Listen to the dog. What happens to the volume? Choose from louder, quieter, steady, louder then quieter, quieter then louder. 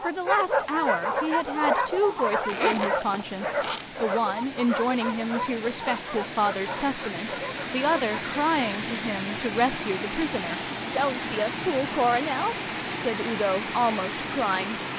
quieter.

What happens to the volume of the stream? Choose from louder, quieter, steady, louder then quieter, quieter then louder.
louder.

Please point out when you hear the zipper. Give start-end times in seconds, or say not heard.
2.5-3.9.